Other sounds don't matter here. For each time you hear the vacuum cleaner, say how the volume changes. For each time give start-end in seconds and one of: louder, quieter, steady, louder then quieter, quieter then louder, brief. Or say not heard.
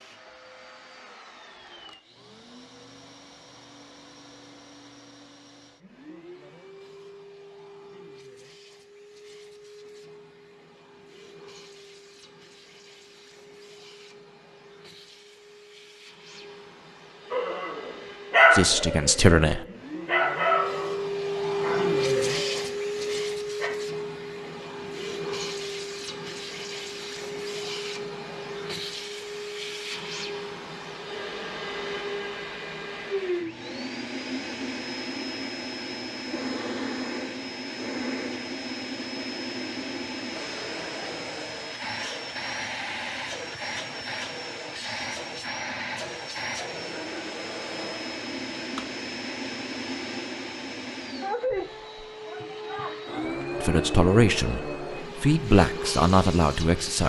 0.0-57.0 louder.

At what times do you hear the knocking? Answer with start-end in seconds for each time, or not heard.
not heard.